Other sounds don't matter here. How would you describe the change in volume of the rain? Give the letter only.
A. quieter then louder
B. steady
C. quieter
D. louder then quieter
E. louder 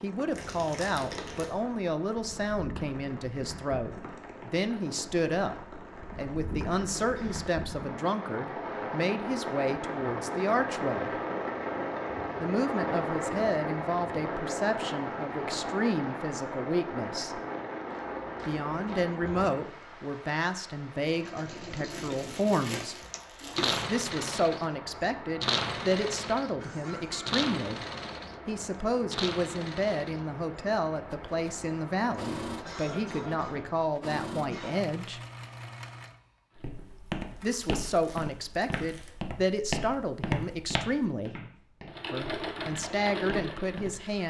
D.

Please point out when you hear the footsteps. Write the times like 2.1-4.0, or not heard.
17.9-19.5, 36.5-44.2.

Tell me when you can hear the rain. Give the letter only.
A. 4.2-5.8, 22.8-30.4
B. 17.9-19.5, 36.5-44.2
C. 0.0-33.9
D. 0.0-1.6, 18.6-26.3
C.